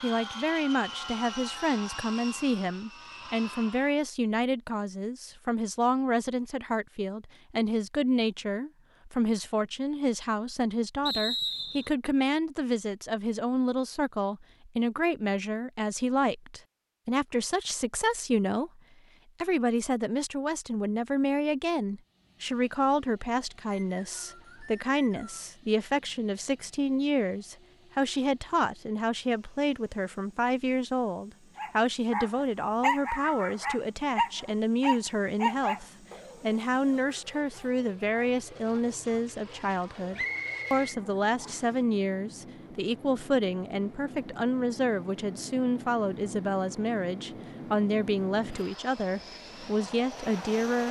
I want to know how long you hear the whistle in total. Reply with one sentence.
The whistle can be heard for 4 seconds in total.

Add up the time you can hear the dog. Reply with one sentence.
The dog can be heard for 10 seconds in total.